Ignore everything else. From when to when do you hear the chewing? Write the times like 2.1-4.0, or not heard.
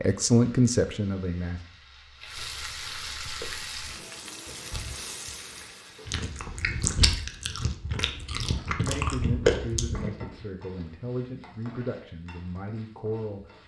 3.2-10.3.